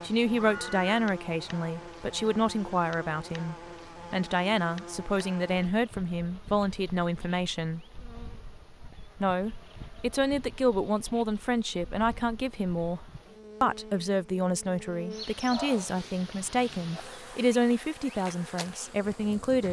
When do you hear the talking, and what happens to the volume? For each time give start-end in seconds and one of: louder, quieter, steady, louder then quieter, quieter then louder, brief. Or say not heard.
0.0-7.8 steady
9.2-19.6 steady.